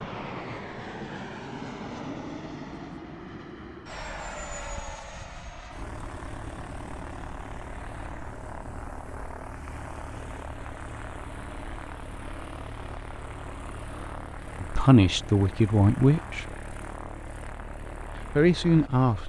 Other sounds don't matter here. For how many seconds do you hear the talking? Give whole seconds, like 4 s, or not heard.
3 s.